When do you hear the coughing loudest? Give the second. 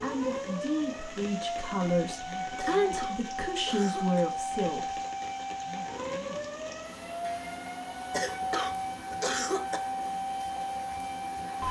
9 s.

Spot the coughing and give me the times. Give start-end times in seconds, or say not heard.
2.5-4.2, 8.1-9.8.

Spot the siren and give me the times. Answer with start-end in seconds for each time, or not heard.
0.0-11.6.